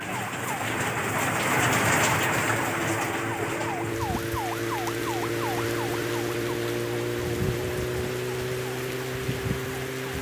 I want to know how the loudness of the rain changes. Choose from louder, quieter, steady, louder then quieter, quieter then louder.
quieter.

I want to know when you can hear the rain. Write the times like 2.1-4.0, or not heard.
0.0-10.1.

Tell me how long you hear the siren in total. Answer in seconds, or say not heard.
10 s.